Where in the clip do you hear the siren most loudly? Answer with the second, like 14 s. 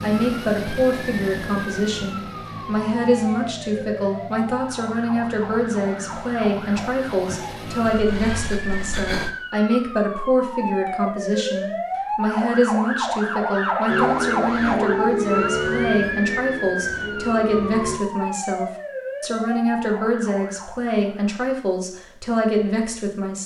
14 s.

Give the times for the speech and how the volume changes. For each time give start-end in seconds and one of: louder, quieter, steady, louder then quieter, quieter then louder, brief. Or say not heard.
0.0-23.4 steady.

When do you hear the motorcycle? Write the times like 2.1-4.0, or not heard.
0.0-9.3, 13.8-18.0.